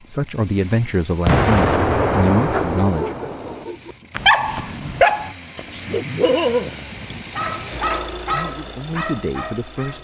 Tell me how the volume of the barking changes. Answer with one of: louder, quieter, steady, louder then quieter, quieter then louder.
louder then quieter.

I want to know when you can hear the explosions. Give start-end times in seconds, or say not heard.
1.2-3.6.